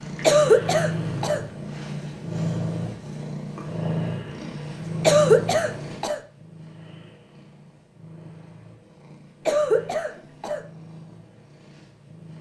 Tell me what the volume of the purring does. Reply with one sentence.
The loudness of the purring goes down.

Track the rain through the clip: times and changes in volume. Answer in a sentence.
The rain can't be heard in this clip.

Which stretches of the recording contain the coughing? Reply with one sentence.
The coughing can be heard from 0.2 to 1.4 s, from 5.0 to 6.2 s and from 9.4 to 10.6 s.